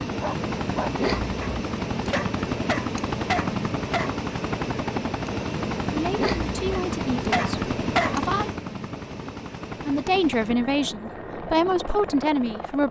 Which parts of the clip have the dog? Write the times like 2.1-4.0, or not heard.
0.0-4.2, 6.7-8.2.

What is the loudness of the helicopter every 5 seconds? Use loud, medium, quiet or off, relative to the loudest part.
loud, loud, medium.